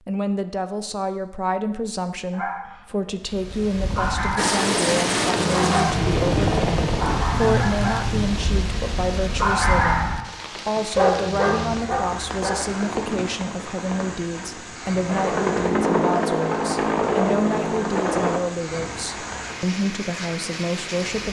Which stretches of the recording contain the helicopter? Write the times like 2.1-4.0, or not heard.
4.3-8.5, 15.1-18.4.